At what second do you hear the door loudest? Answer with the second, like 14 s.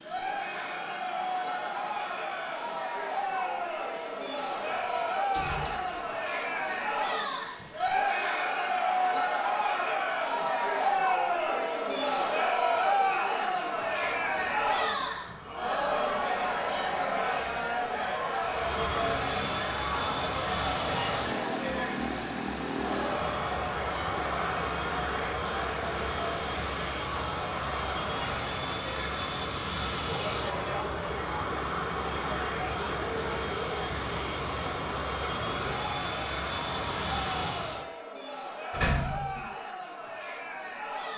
39 s.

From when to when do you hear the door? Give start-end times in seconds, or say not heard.
4.6-6.0, 38.7-39.5.